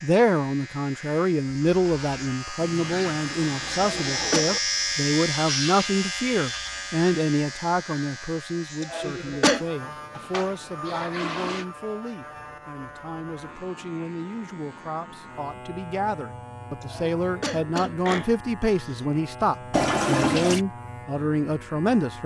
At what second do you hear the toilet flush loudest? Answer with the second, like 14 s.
20 s.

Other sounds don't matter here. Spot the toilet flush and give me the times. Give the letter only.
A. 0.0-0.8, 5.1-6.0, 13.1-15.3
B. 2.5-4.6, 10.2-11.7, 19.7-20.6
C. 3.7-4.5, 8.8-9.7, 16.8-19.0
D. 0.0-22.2
B.